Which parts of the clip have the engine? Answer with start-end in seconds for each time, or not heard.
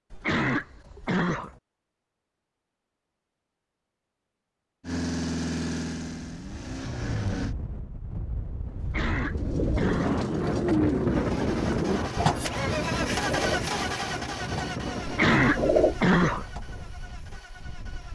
4.8-7.5, 11.1-18.0.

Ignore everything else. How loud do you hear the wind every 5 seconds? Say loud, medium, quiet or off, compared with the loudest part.
off, medium, loud, quiet.